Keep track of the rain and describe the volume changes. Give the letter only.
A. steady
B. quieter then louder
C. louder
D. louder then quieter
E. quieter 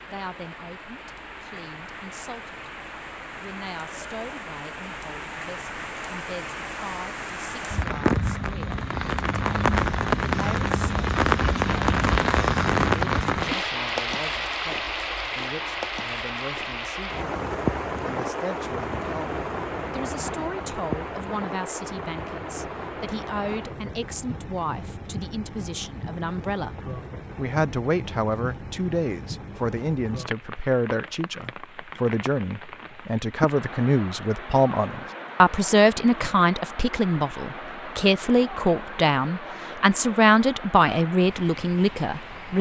D.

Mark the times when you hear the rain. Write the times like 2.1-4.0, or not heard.
0.0-42.5.